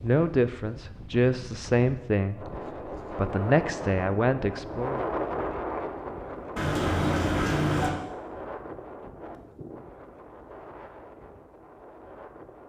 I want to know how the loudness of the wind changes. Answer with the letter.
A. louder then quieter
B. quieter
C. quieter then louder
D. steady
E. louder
A.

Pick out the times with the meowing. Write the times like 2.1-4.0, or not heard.
6.5-8.0.